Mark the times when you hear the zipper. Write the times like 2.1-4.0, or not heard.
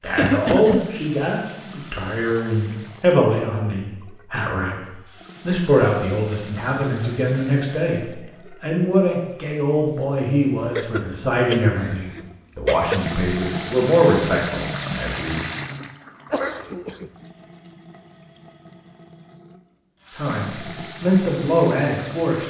not heard.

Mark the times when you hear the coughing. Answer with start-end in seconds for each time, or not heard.
0.1-0.8, 10.8-13.1, 16.3-17.1.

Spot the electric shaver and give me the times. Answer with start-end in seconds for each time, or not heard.
not heard.